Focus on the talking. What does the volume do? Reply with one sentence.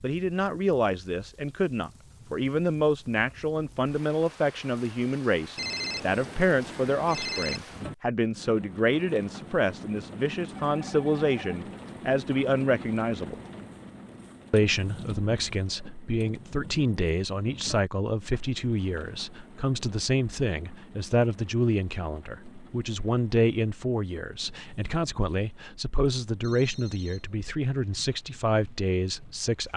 The volume of the talking stays about the same.